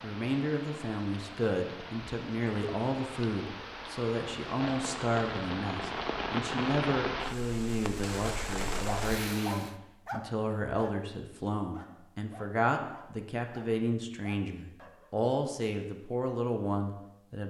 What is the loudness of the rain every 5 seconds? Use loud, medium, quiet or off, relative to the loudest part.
medium, loud, off, off.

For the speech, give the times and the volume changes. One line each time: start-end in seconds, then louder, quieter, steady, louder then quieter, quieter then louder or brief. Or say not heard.
0.0-17.4 steady.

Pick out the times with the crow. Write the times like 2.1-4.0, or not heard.
not heard.